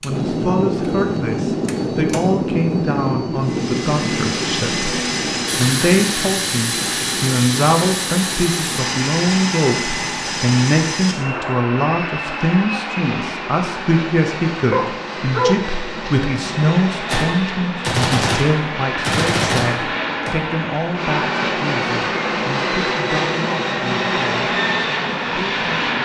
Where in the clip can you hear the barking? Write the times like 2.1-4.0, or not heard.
14.7-16.3.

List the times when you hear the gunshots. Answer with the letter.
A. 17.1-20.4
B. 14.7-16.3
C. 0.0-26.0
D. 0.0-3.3
A.